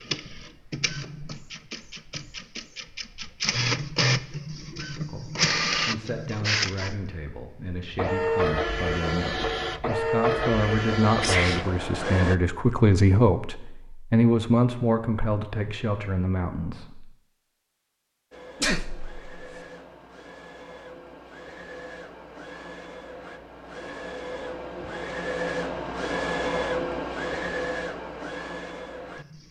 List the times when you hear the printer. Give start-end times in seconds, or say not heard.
0.0-12.4, 18.3-29.4.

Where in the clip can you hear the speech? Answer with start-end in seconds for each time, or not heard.
5.0-17.1.